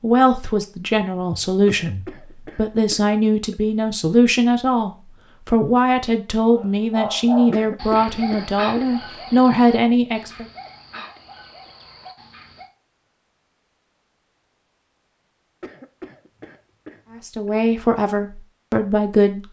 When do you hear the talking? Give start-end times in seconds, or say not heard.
0.0-10.4, 17.2-19.4.